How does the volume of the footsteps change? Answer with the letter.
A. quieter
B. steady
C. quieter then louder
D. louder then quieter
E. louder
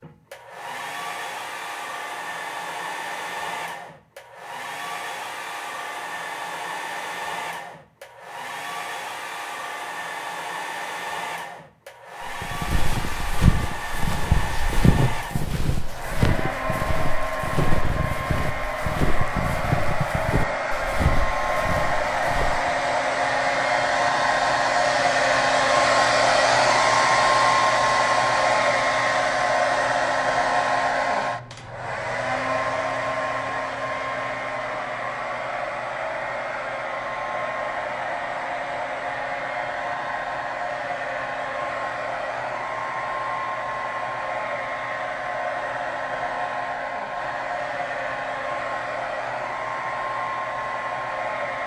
A.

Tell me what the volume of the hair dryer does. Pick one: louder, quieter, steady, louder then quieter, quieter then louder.
louder then quieter.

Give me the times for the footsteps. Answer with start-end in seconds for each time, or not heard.
12.2-22.9.